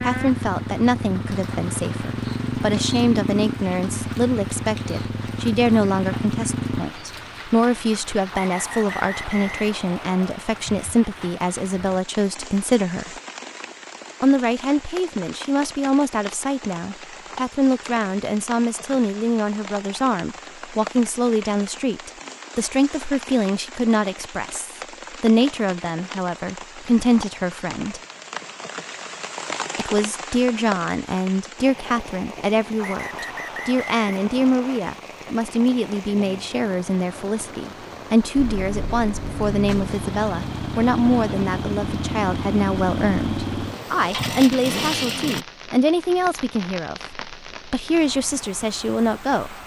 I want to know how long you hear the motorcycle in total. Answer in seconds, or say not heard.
14 s.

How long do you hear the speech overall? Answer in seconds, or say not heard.
47 s.